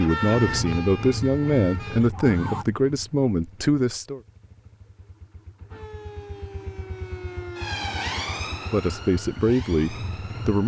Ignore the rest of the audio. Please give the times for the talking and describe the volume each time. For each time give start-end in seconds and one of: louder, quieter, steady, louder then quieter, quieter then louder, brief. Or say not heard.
0.0-4.2 steady
8.7-10.6 brief.